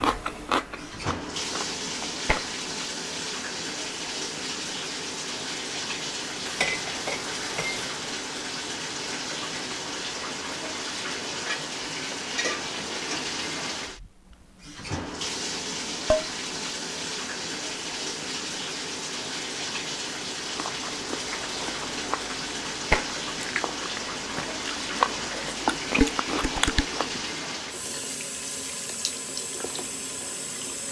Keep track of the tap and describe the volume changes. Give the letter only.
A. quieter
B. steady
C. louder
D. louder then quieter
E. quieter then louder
B.